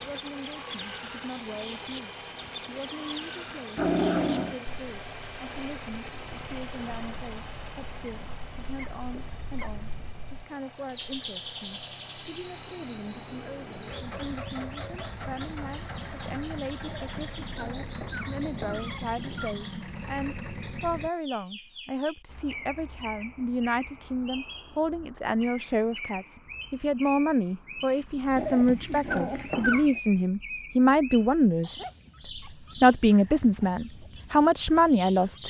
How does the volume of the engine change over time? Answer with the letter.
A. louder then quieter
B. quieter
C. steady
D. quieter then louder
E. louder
D.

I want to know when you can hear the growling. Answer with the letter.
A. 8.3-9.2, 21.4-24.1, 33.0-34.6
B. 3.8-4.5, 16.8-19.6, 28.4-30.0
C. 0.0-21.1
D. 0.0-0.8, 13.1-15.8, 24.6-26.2
B.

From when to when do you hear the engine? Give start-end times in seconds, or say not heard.
0.0-21.1.